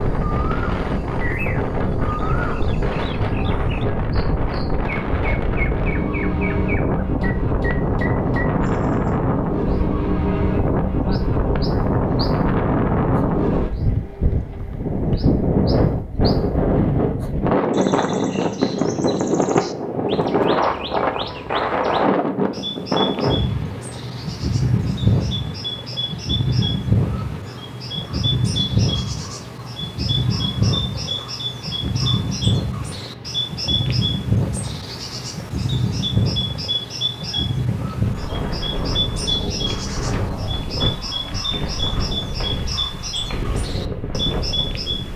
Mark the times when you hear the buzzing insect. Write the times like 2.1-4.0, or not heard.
not heard.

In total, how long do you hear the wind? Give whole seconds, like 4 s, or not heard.
45 s.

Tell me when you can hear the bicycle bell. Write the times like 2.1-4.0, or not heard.
not heard.